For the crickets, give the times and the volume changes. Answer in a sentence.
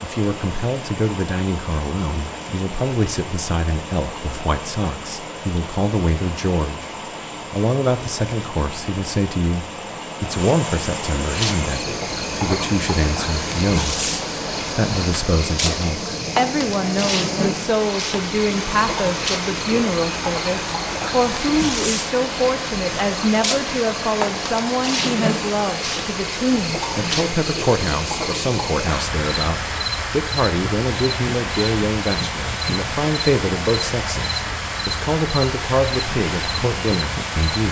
The crickets can be heard from 11.2 to 37.6 s, at a steady volume.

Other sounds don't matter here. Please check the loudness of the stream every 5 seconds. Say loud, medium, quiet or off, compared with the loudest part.
medium, medium, loud, loud, loud, loud, loud, loud.